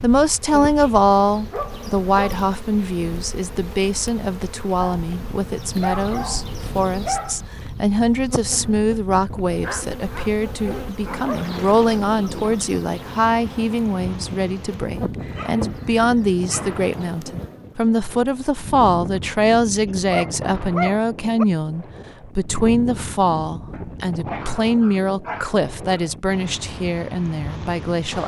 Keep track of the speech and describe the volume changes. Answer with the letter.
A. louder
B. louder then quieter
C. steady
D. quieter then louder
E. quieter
C.